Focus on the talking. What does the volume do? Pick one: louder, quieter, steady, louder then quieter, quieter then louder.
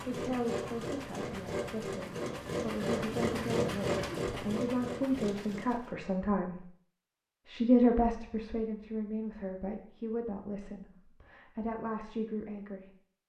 louder then quieter.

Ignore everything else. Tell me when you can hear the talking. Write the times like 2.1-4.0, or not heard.
0.1-6.5, 7.5-12.9.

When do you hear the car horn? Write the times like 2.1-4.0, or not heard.
not heard.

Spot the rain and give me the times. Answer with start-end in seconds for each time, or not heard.
not heard.